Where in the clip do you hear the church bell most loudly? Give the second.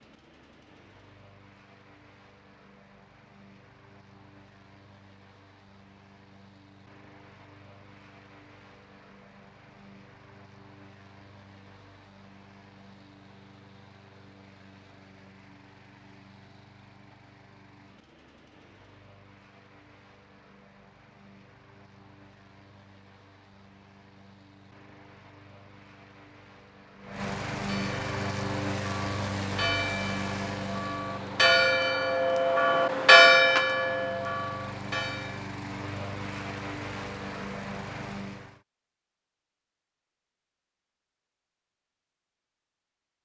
33 s.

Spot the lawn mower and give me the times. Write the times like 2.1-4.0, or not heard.
0.0-38.6.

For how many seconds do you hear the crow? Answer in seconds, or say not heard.
not heard.